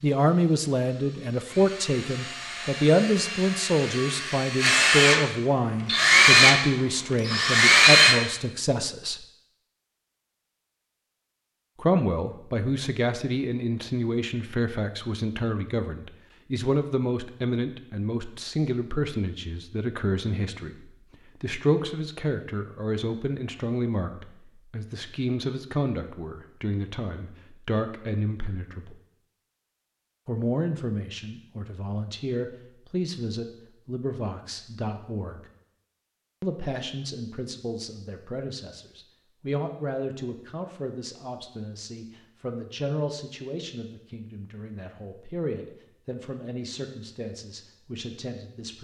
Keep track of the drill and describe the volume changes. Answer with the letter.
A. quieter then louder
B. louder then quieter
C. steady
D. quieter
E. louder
E.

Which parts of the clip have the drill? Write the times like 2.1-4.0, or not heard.
0.0-8.2.